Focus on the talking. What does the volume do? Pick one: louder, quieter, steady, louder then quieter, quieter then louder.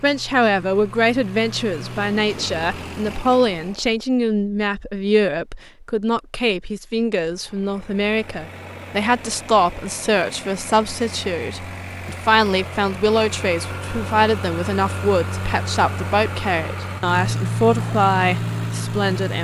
steady.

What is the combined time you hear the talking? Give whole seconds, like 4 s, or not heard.
19 s.